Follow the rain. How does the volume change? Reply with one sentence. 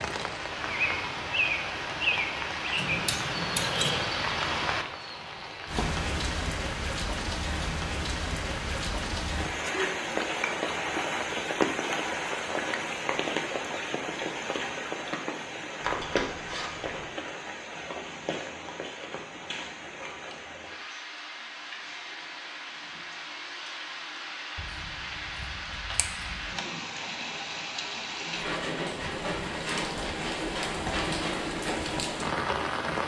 The loudness of the rain goes down, then up.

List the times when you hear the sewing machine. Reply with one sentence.
The sewing machine can't be heard in this clip.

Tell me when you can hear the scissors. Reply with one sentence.
The scissors can be heard from 2.8 to 4.0 s, from 15.8 to 17.1 s and from 24.6 to 26.6 s.